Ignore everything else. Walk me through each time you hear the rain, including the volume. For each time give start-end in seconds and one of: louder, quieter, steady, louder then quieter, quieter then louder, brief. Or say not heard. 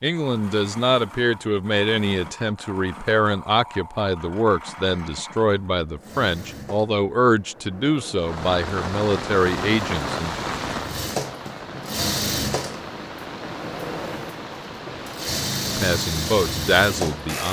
8.2-17.4 quieter.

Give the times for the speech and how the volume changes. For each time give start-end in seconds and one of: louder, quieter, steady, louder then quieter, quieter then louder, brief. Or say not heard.
0.0-10.3 steady
15.7-17.4 brief.